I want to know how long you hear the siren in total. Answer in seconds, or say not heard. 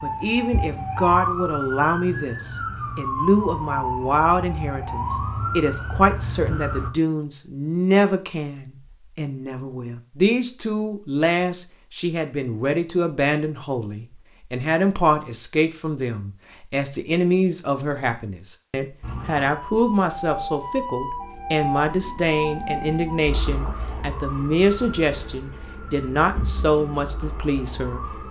16 s.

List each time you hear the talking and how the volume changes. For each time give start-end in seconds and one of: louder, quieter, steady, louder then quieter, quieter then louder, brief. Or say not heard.
0.0-28.2 steady.